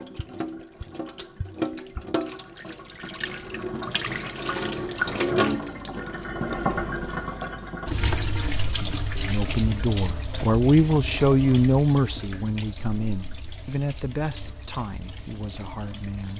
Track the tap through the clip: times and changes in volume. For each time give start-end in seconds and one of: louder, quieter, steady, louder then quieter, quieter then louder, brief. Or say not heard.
0.0-16.3 louder then quieter.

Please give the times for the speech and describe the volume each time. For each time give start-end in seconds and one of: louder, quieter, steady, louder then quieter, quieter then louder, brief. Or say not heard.
9.2-16.3 quieter.